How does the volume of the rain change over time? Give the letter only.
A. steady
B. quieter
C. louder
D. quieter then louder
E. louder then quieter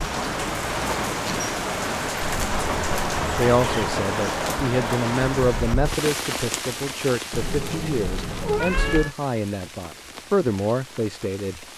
B.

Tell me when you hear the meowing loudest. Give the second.
9 s.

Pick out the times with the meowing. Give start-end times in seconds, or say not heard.
2.2-4.0, 7.3-9.2.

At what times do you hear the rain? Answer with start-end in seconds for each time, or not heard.
0.0-11.7.